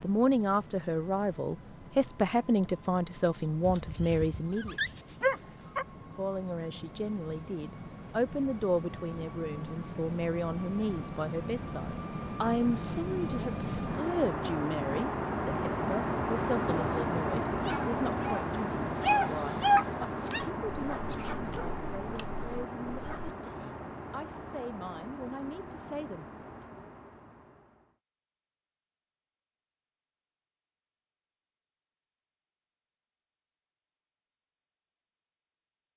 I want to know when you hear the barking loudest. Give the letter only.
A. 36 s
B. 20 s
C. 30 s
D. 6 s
B.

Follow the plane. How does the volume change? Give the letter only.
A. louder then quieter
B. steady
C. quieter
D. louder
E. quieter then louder
A.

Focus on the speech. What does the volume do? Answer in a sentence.
The loudness of the speech goes down.